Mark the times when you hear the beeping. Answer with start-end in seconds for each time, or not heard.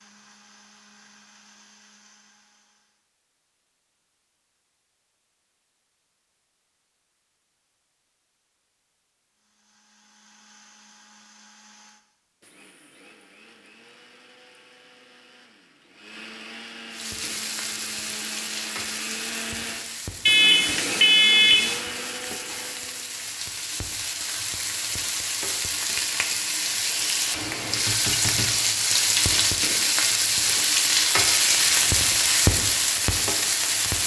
20.2-21.9.